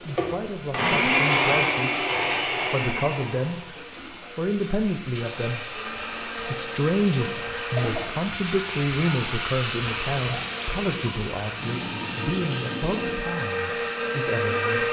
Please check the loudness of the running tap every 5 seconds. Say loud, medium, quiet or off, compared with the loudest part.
medium, loud, loud.